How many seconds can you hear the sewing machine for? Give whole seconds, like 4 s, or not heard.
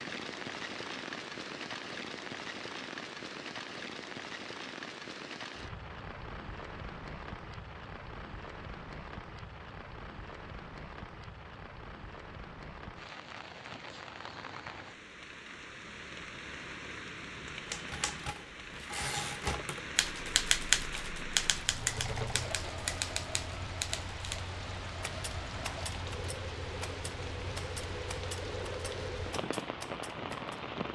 8 s.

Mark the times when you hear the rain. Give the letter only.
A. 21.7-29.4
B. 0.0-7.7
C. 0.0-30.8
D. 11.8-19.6
C.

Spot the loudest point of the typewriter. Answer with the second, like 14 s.
21 s.